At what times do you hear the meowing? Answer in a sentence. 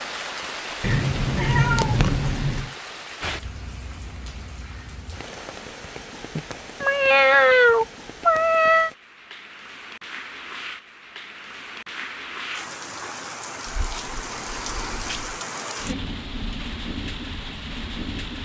The meowing can be heard from 0.8 to 2.7 s, from 6.3 to 8.9 s and from 13.7 to 15.4 s.